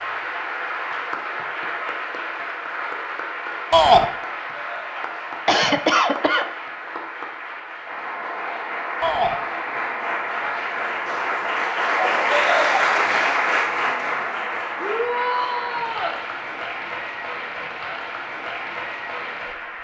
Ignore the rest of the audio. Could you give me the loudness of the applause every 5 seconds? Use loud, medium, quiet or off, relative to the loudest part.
medium, medium, loud, medium.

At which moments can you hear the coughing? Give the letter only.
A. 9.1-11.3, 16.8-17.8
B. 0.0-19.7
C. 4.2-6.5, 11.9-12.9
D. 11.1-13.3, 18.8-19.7
C.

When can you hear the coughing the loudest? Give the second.
6 s.